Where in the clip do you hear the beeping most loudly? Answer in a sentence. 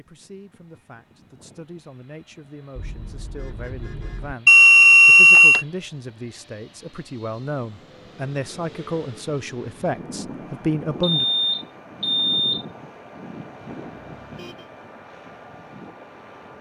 The loudest moment of the beeping is at 5 seconds.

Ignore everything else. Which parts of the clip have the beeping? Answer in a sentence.
You can hear the beeping from 4.5 to 5.7 s and from 11.0 to 12.7 s.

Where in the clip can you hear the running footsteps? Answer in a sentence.
You can't hear the running footsteps here.